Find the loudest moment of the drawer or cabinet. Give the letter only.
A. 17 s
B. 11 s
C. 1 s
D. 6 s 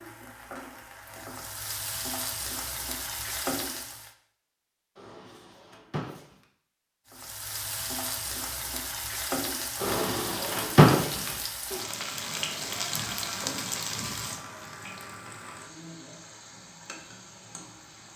B.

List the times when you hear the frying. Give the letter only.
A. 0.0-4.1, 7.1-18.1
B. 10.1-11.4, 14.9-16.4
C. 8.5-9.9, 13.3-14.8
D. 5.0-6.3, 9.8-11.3
A.